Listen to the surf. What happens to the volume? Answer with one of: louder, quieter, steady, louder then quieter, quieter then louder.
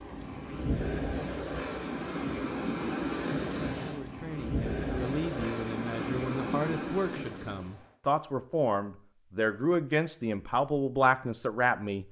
steady.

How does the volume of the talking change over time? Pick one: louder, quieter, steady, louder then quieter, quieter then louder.
louder.